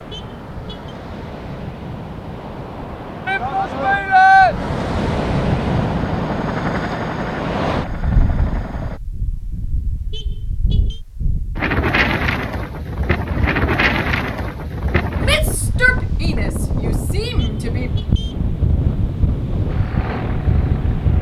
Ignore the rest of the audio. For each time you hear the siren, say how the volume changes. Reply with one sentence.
You can't hear the siren here.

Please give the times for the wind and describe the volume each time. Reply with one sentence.
You can hear the wind from 0.0 to 21.1 s, getting louder.